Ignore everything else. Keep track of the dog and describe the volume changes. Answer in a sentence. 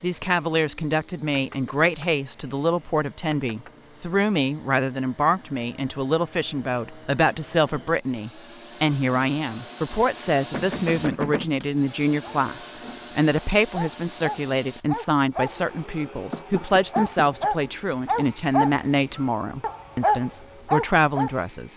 The loudness of the dog goes down, then up.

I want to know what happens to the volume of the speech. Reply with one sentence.
The volume of the speech stays about the same.